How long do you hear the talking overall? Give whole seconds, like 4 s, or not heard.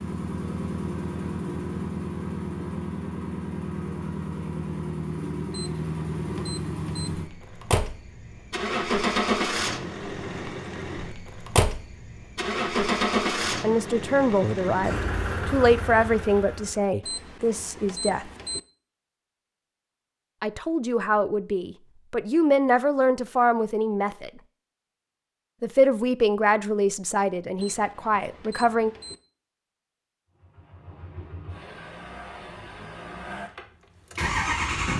12 s.